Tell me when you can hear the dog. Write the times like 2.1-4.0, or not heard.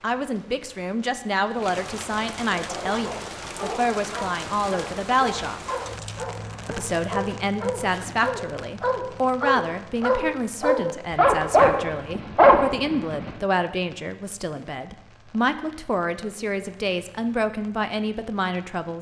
2.5-13.3.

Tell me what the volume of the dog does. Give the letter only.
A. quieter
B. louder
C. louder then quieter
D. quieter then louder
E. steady
B.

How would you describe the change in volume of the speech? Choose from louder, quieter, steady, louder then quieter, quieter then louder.
steady.